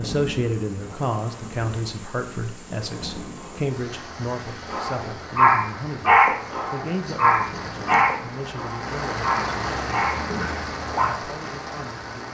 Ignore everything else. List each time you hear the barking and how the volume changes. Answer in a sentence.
You can hear the barking from 4.7 to 11.2 s, getting quieter.